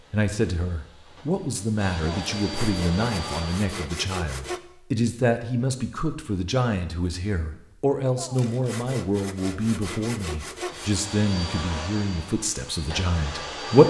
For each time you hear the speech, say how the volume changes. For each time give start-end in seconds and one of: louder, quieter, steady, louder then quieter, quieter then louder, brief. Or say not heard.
0.1-13.8 steady.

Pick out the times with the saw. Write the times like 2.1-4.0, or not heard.
2.1-4.6, 8.2-11.1.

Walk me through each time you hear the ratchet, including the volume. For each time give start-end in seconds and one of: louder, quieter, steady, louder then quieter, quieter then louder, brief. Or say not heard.
not heard.